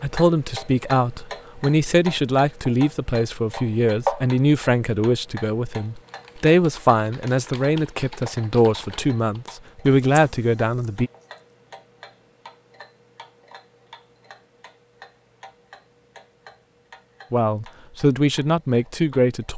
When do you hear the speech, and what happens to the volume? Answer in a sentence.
You can hear the speech from 0.0 to 11.1 s, at a steady volume; and briefly from 17.3 to 19.5 s.